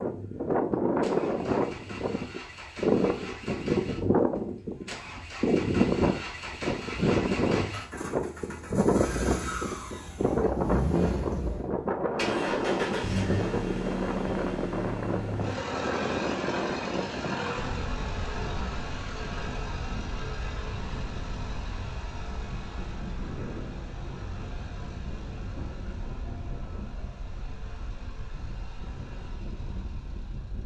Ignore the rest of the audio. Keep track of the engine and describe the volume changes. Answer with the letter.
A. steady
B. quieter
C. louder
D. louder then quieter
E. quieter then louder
D.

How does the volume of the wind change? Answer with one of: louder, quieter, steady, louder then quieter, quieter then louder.
quieter.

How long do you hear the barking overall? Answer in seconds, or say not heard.
not heard.